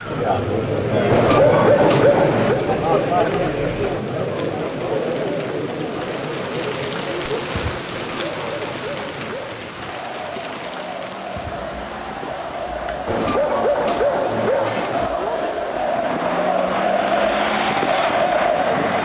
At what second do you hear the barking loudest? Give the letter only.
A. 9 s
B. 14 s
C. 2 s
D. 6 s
C.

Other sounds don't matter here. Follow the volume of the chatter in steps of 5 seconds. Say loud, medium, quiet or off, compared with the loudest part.
loud, medium, medium, loud.